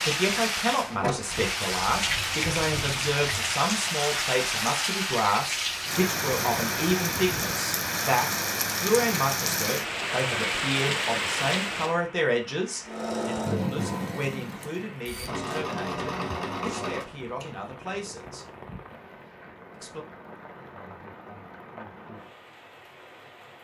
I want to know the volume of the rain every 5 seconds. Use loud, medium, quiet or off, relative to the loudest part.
loud, loud, loud, quiet, quiet.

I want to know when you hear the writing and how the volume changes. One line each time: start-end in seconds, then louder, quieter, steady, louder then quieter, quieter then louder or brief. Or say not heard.
not heard.